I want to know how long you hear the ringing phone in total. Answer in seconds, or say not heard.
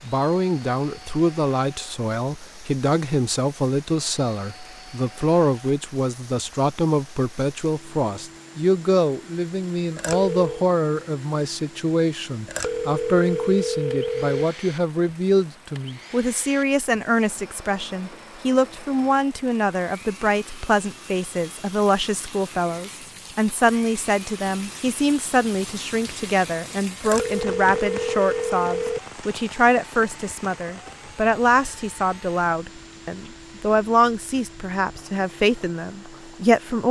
5 s.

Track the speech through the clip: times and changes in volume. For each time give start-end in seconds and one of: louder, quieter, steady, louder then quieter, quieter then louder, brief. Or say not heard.
0.0-36.8 steady.